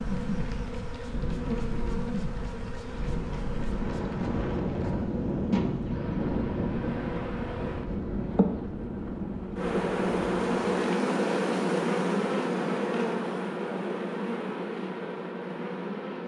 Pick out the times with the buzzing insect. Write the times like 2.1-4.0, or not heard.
0.0-16.2.